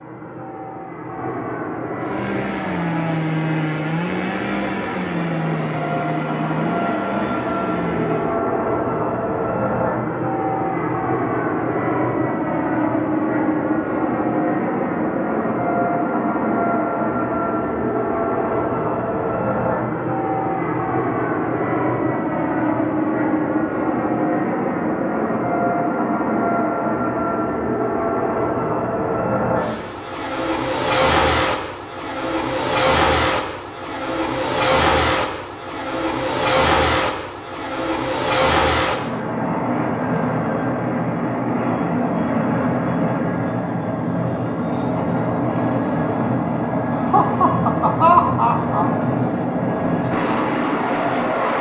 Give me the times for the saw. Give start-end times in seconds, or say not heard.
1.9-8.4.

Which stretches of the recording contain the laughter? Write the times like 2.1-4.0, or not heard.
46.9-48.9.